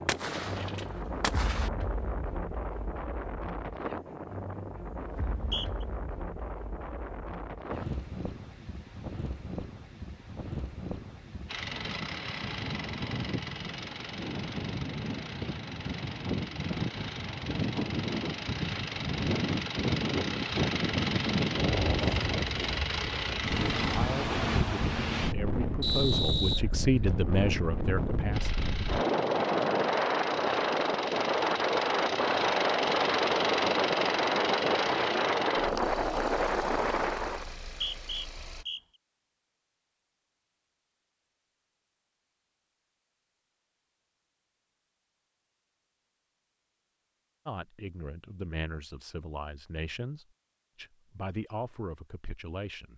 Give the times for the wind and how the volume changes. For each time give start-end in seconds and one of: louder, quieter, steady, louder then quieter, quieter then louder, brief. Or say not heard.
0.0-37.5 louder.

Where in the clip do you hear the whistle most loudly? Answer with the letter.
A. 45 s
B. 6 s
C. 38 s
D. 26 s
D.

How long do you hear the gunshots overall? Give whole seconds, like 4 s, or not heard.
2 s.